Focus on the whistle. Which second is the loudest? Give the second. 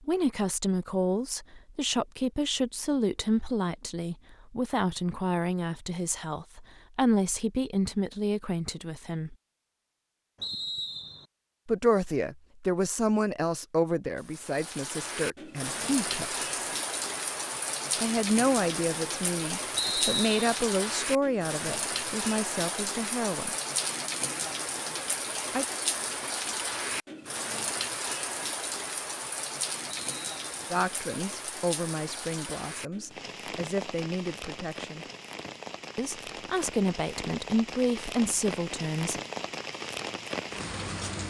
20 s.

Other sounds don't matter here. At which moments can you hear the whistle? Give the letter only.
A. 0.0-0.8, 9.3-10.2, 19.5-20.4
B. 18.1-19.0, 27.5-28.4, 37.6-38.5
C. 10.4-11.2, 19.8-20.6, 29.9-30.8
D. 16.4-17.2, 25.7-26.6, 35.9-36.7
C.